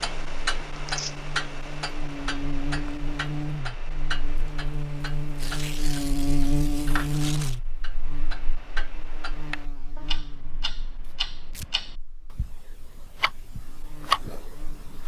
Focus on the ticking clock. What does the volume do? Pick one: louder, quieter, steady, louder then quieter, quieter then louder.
quieter then louder.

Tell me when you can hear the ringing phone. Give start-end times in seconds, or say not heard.
not heard.